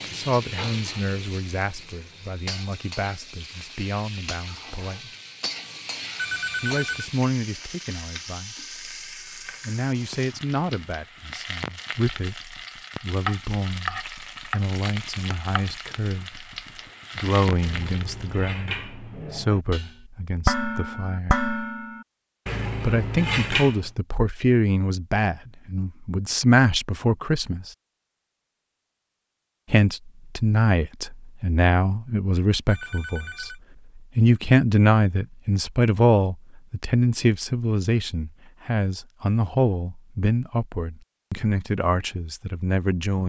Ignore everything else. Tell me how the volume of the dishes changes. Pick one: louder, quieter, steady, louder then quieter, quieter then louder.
louder.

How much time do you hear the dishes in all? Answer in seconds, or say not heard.
7 s.